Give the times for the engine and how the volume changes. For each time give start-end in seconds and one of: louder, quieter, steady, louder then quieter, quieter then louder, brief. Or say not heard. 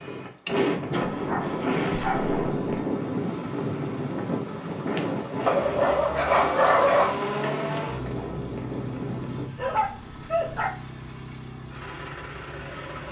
0.1-13.0 louder then quieter.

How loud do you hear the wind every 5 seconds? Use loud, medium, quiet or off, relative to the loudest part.
loud, medium, off.